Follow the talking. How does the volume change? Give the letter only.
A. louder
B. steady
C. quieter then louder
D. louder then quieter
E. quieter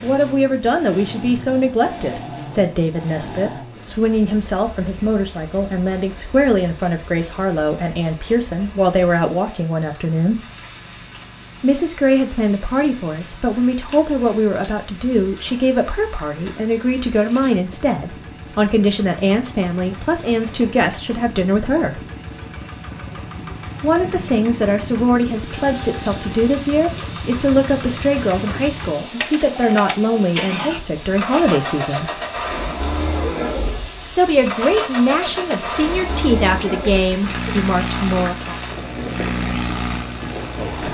B.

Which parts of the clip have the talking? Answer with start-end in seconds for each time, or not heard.
0.0-10.4, 11.6-22.1, 23.8-32.2, 34.1-38.5.